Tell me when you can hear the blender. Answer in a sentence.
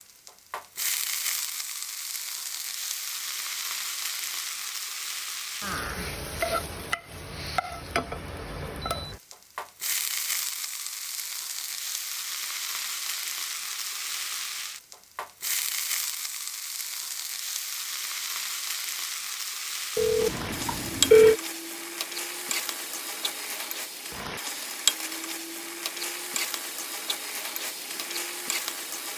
You can't hear the blender here.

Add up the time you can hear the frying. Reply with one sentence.
The frying can be heard for 29 seconds in total.